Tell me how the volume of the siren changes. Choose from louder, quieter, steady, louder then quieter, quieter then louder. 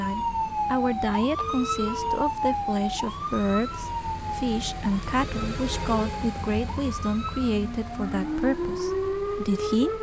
quieter then louder.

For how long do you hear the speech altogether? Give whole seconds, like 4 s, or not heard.
10 s.